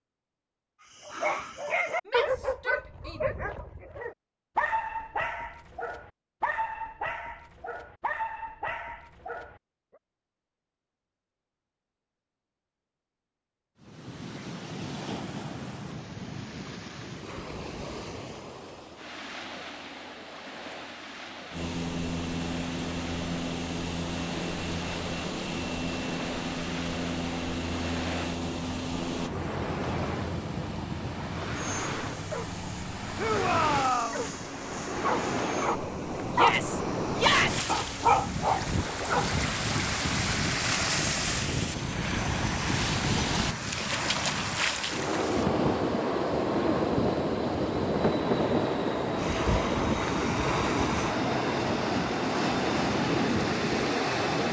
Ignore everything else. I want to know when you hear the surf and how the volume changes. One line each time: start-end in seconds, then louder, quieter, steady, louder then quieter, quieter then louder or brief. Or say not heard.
13.8-54.4 louder.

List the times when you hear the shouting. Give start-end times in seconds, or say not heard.
2.0-3.2, 33.1-34.2, 36.3-37.6.